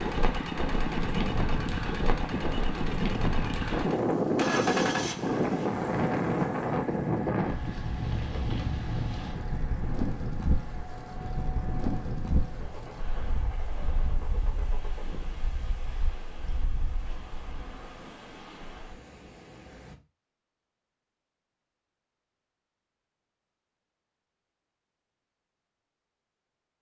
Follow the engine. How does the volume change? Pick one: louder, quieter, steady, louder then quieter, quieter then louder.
quieter.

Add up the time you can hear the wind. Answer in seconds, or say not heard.
20 s.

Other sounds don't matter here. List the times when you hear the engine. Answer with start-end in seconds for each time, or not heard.
0.0-15.2.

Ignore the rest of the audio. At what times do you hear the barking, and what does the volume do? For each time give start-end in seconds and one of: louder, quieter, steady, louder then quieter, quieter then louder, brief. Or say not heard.
not heard.